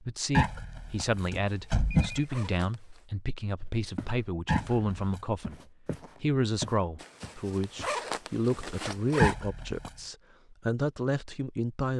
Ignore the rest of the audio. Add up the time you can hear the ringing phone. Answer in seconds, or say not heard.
3 s.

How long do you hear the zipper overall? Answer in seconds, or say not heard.
4 s.